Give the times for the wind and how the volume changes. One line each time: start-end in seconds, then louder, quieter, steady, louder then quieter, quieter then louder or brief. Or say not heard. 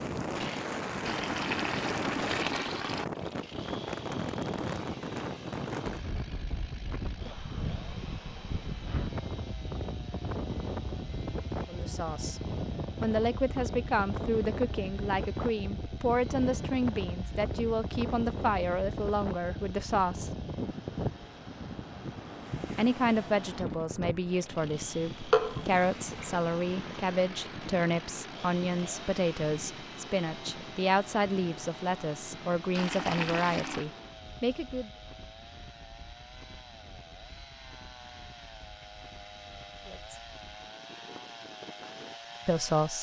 0.0-42.9 quieter.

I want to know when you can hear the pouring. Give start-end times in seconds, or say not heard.
1.1-3.0, 25.3-26.4, 32.8-33.9.